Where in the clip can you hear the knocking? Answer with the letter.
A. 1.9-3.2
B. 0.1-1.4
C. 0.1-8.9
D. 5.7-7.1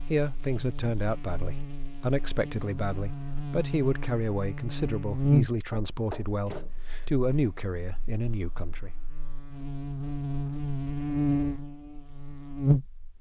D.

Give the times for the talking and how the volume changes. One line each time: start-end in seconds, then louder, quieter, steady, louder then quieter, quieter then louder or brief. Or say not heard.
0.1-8.9 steady.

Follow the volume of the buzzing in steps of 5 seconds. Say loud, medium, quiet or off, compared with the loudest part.
medium, loud, loud.